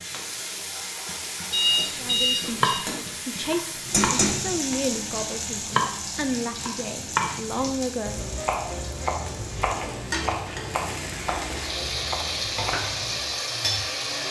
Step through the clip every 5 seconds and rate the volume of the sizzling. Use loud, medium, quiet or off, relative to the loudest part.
loud, medium, loud.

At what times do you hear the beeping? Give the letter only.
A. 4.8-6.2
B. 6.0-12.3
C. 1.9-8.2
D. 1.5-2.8
D.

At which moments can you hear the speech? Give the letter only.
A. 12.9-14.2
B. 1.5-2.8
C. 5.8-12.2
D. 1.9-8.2
D.